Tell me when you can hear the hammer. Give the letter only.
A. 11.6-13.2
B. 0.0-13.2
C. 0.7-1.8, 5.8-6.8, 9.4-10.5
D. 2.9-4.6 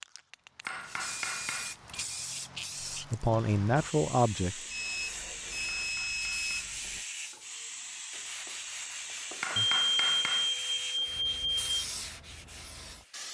C.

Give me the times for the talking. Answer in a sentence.
You can hear the talking from 2.9 to 4.6 s.